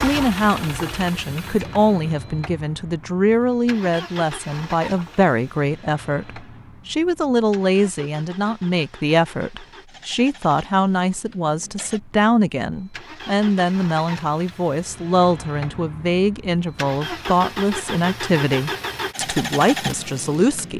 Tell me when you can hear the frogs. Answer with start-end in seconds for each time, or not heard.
not heard.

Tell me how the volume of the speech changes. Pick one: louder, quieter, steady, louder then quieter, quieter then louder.
steady.